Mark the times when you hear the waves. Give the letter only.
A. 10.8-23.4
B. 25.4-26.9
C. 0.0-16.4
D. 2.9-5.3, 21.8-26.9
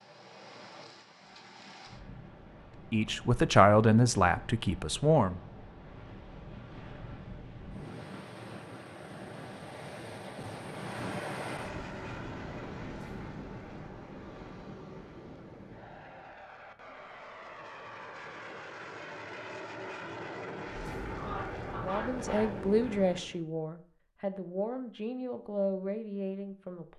C.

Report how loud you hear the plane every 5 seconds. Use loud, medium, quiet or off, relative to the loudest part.
off, off, medium, medium, loud, off.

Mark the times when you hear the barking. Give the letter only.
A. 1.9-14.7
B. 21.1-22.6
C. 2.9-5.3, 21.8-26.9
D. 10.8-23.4
B.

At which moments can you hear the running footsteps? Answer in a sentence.
The running footsteps can't be heard in this clip.